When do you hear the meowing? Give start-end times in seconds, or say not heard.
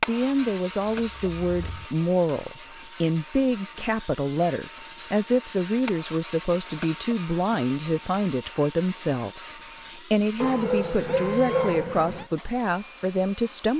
0.2-1.9, 10.4-12.2.